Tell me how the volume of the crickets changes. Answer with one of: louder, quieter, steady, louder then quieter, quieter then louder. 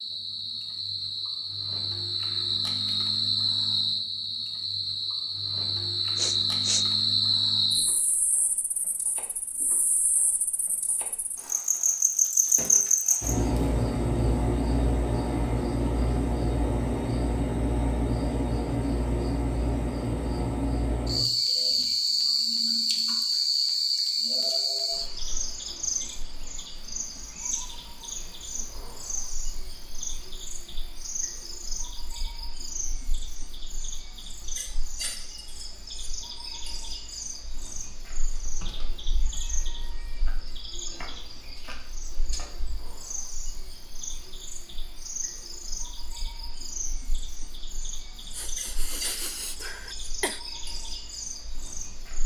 quieter.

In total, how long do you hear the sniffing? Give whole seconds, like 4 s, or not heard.
3 s.